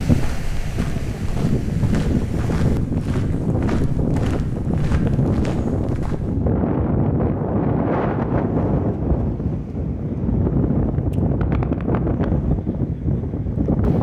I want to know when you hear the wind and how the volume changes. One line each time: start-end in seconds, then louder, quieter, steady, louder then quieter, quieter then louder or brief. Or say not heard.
0.0-13.9 steady.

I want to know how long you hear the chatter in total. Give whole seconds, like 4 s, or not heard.
not heard.